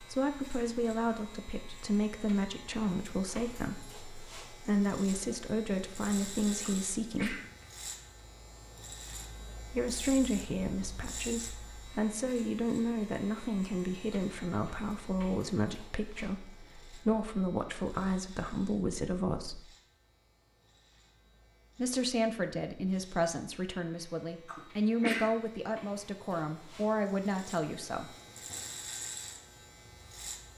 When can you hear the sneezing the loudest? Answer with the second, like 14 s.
25 s.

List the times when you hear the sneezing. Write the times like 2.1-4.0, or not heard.
6.6-7.7, 24.4-25.2.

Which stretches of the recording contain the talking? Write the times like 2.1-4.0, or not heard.
0.0-7.3, 9.7-19.6, 21.8-28.1.